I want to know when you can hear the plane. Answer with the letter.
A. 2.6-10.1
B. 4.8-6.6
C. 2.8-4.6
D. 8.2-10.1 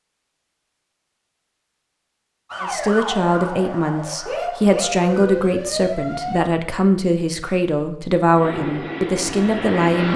D.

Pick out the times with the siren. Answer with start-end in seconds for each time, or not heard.
2.5-6.4.